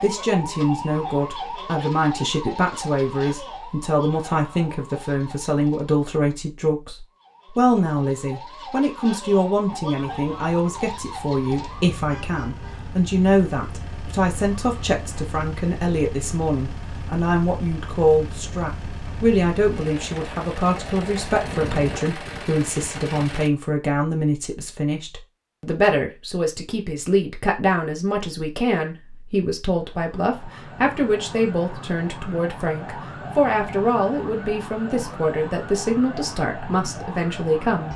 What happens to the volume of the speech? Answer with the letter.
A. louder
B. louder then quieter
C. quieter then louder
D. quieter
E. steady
E.